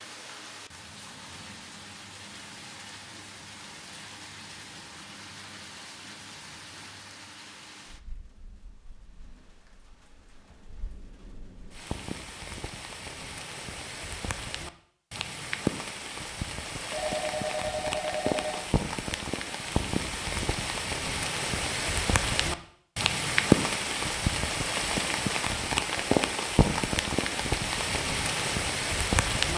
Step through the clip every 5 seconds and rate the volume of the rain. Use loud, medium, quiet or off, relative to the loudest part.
quiet, quiet, quiet, medium, loud, loud.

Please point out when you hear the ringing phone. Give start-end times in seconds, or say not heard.
16.9-18.9.